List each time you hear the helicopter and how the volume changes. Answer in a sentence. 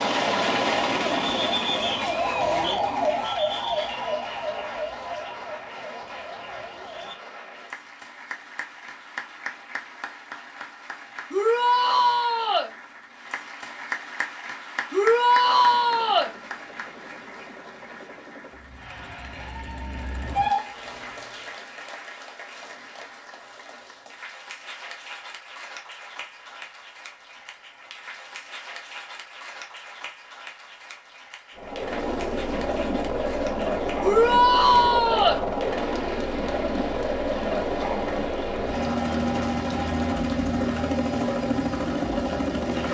The helicopter can be heard briefly from 0.0 to 2.4 s; from 15.6 to 21.5 s, getting louder; and from 31.6 to 42.9 s, at a steady volume.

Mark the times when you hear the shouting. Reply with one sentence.
You can hear the shouting from 11.3 to 12.7 s, from 14.9 to 16.3 s and from 34.0 to 35.4 s.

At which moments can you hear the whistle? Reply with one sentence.
The whistle can't be heard in this clip.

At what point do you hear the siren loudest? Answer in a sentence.
The volume of the siren peaks at 3 seconds.